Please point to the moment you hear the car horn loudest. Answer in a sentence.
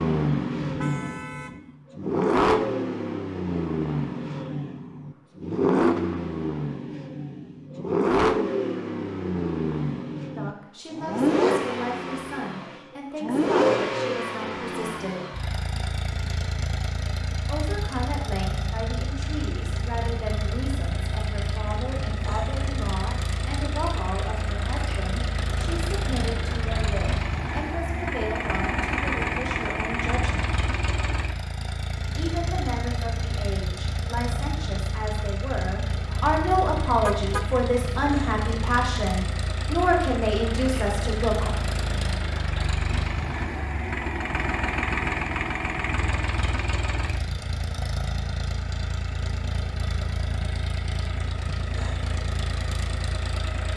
The volume of the car horn peaks at 37 seconds.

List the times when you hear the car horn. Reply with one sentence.
You can hear the car horn from 0.6 to 1.6 s and from 37.0 to 37.5 s.